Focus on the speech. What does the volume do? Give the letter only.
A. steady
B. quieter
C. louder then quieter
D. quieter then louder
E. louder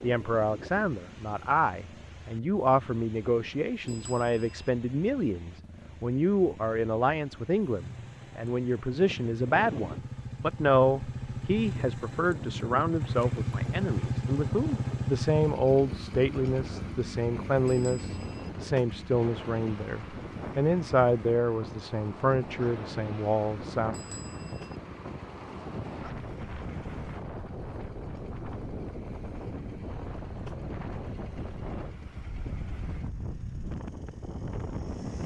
A.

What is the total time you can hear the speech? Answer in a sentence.
You can hear the speech for 24 seconds altogether.